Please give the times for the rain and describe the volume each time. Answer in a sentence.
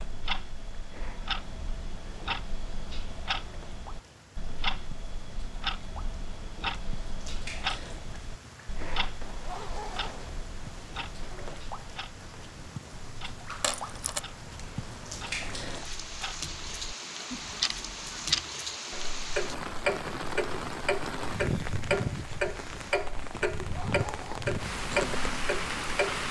You can hear the rain from 0.0 to 26.2 s, getting louder.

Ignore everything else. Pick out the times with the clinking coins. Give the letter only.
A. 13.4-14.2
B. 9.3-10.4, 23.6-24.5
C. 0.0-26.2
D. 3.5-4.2
A.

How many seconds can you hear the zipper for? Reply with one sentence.
You can hear the zipper for 2 seconds altogether.